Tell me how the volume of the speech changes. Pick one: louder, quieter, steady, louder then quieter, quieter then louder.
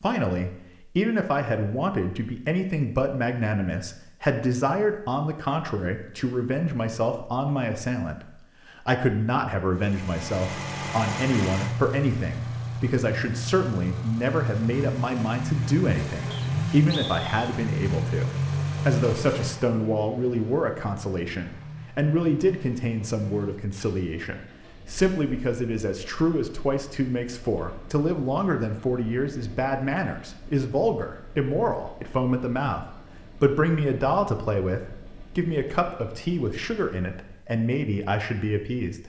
steady.